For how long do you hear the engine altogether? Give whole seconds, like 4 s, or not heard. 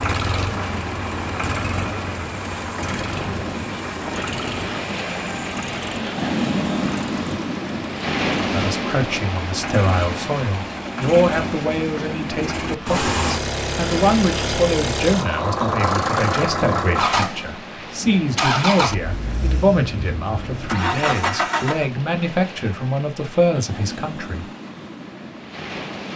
22 s.